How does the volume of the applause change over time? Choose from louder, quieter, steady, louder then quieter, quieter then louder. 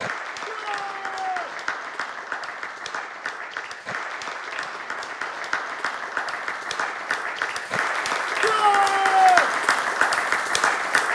louder.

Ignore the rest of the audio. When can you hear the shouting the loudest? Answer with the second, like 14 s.
9 s.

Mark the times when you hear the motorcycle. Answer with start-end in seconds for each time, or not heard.
not heard.